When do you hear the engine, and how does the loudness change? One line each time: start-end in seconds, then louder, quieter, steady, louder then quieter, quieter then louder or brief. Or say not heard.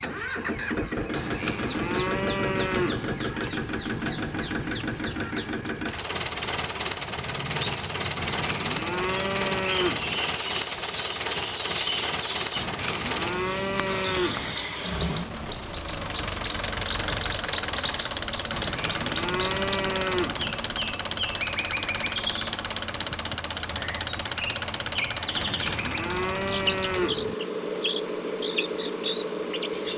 0.0-29.9 steady.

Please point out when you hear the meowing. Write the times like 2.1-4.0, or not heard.
not heard.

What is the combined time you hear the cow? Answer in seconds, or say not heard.
10 s.